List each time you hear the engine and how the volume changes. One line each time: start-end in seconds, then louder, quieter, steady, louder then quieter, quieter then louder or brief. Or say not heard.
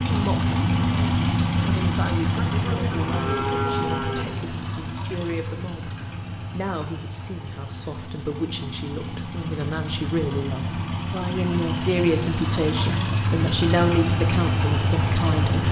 0.0-15.6 quieter then louder.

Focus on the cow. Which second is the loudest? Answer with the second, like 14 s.
4 s.